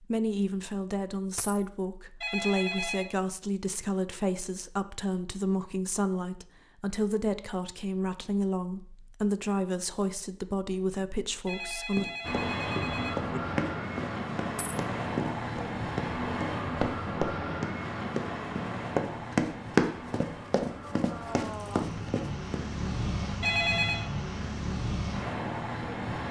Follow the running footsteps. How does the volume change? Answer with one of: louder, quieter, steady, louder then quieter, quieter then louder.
louder then quieter.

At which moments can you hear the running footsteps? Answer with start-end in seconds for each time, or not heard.
11.9-22.6.